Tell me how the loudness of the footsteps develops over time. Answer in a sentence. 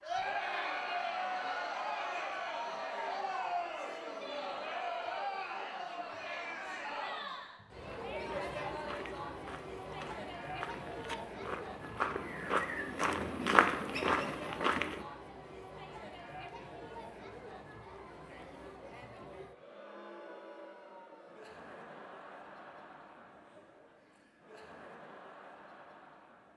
The loudness of the footsteps goes up.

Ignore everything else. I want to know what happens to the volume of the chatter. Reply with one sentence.
The volume of the chatter goes down.